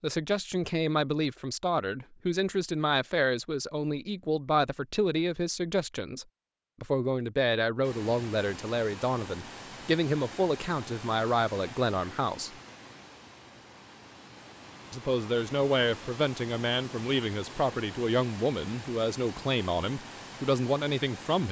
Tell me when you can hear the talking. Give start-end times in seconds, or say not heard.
0.0-12.6, 14.9-21.4.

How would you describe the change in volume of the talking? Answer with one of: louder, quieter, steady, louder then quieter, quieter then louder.
steady.